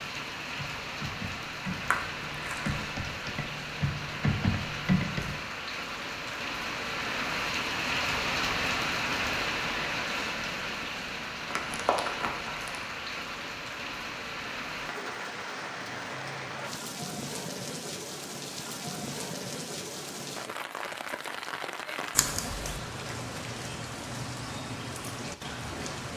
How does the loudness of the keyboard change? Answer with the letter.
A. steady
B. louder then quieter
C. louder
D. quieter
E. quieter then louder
C.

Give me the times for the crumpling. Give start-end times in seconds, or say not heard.
1.7-2.8, 11.5-12.8, 22.1-22.8.